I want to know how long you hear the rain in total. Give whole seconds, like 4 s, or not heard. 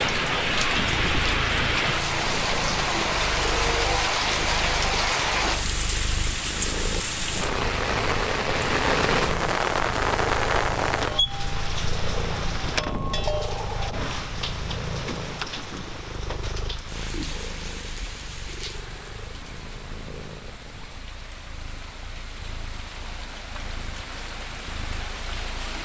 26 s.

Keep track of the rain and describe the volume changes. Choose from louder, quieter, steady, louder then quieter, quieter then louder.
quieter.